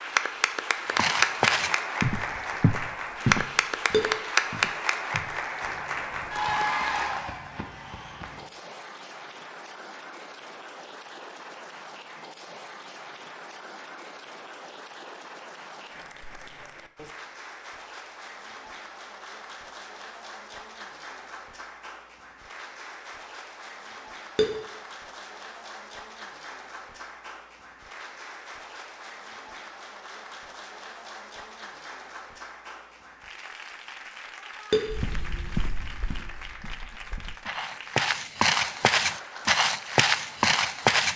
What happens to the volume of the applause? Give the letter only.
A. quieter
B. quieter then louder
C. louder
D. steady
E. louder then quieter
A.